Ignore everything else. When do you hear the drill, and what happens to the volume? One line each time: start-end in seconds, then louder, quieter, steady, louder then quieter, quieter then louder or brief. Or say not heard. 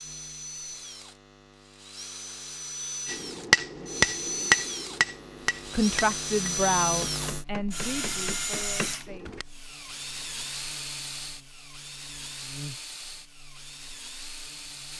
0.0-14.9 louder then quieter.